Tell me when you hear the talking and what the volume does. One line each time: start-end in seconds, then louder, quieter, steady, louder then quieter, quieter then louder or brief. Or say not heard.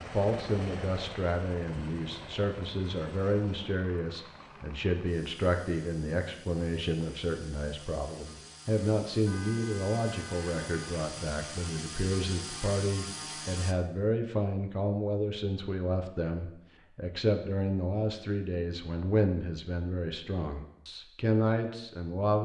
0.0-22.3 steady.